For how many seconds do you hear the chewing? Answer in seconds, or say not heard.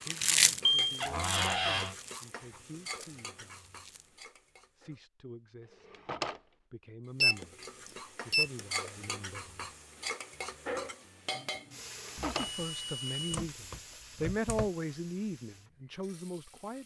4 s.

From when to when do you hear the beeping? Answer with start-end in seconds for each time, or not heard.
0.5-1.0, 7.2-8.6, 12.2-14.7.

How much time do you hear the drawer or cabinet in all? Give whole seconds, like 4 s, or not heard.
2 s.